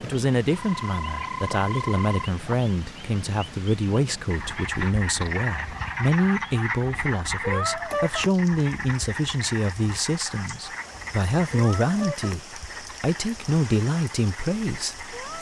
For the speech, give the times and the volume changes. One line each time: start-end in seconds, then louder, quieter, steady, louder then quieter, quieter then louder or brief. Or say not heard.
0.0-15.1 steady.